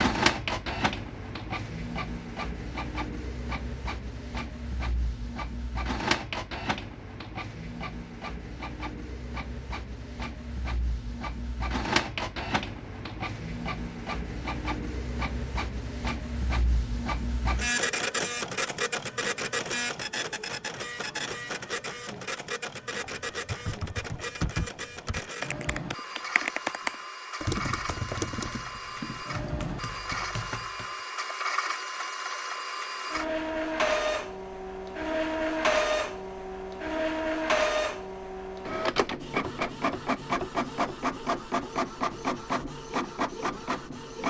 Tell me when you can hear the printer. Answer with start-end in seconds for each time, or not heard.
0.0-44.2.